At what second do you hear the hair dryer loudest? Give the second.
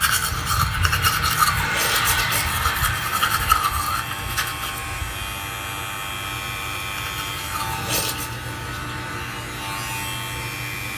2 s.